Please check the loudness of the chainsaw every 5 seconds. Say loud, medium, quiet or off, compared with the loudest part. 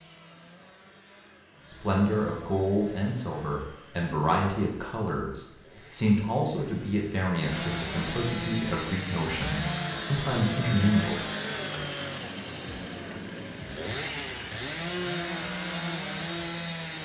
quiet, loud, loud, loud.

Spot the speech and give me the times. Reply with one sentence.
The speech can be heard from 1.6 to 11.2 s.